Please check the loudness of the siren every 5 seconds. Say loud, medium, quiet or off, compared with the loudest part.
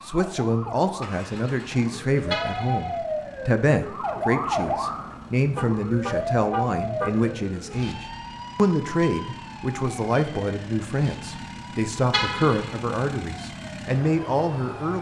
loud, loud, quiet.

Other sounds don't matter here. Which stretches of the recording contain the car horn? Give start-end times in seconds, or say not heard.
2.3-3.0, 5.5-7.3, 12.1-12.8.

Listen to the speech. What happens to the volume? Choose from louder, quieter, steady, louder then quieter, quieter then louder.
steady.